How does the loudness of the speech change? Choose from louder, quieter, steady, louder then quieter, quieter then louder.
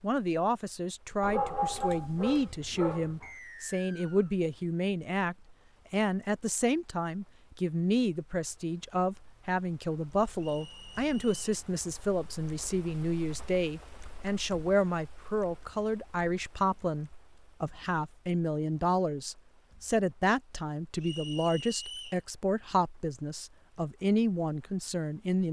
steady.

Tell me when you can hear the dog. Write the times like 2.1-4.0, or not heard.
1.2-3.3.